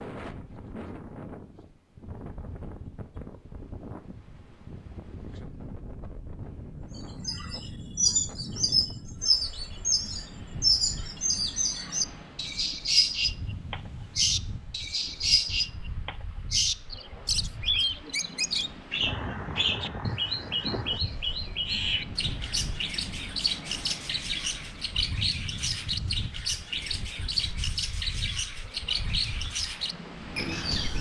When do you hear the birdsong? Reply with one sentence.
You can hear the birdsong from 7.0 to 30.9 s.